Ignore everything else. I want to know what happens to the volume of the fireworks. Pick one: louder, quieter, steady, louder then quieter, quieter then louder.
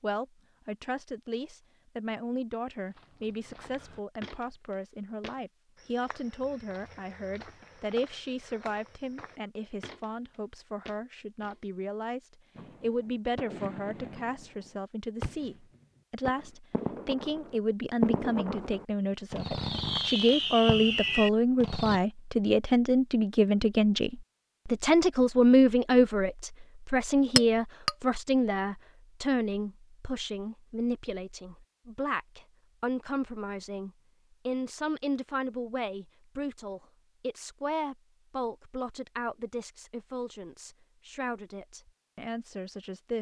louder.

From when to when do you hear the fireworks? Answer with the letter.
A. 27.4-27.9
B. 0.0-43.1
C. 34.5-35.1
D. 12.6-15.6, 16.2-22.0
D.